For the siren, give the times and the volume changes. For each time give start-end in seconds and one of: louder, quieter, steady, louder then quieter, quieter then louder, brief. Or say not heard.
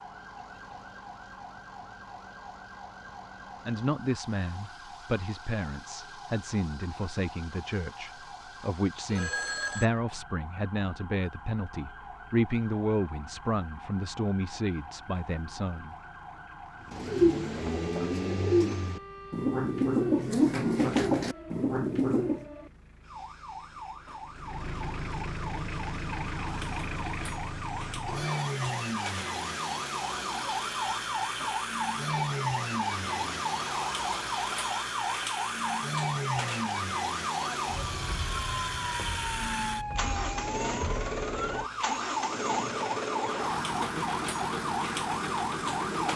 0.0-46.1 louder.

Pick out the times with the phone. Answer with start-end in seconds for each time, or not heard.
9.1-9.9, 28.1-28.6.